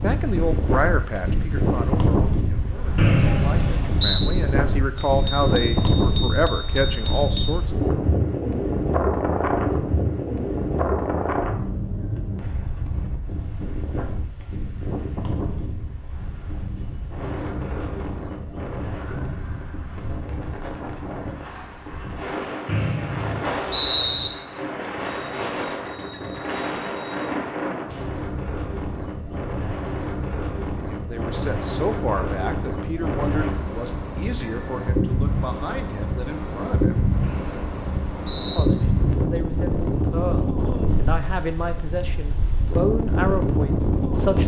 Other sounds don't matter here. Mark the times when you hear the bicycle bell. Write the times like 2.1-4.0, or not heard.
5.0-7.5, 25.1-27.2, 34.4-34.9.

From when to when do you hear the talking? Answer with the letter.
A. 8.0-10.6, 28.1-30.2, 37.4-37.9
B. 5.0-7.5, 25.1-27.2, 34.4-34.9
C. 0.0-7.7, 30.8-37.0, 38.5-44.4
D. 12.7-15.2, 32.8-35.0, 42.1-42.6
C.